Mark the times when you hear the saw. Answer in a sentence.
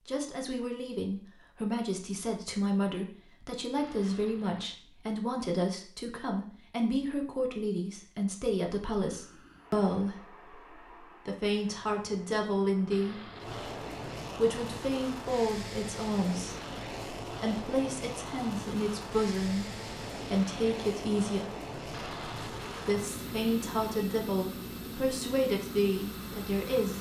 You can't hear the saw here.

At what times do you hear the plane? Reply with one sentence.
The plane can be heard from 9.0 to 26.9 s.